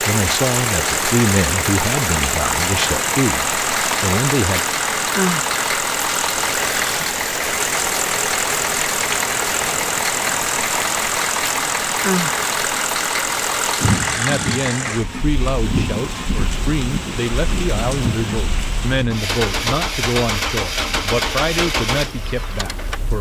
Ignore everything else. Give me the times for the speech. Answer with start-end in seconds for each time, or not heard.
0.0-4.7, 14.2-23.1.